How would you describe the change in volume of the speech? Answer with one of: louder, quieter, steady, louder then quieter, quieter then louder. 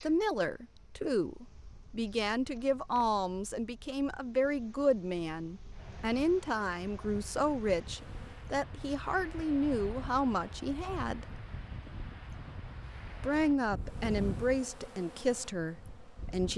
steady.